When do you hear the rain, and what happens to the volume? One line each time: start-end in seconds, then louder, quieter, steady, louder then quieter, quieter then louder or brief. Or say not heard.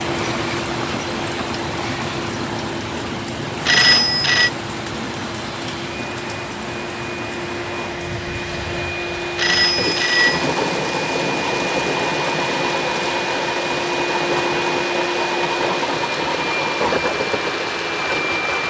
0.0-18.6 quieter.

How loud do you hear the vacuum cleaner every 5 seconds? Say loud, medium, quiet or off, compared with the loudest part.
medium, medium, loud, loud.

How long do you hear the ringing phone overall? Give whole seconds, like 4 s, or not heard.
2 s.